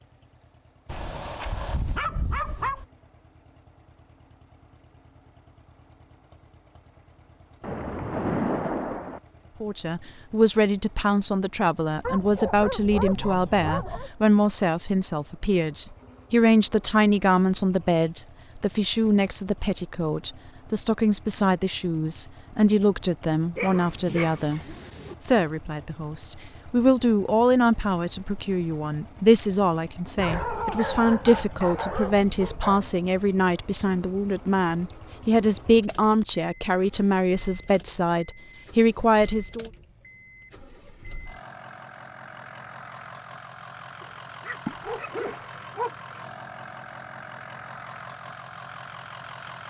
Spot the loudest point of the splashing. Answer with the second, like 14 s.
8 s.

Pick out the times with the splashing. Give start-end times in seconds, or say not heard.
7.6-9.2, 44.5-45.5.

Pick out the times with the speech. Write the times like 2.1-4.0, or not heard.
9.6-39.7.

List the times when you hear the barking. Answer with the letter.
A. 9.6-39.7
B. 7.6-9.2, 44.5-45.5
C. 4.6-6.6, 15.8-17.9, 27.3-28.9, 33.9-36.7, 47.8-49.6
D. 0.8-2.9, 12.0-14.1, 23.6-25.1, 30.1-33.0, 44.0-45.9
D.